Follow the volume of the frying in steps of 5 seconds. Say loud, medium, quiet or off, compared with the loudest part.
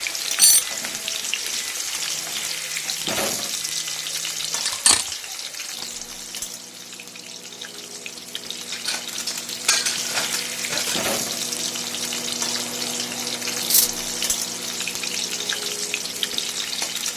loud, medium, loud, loud.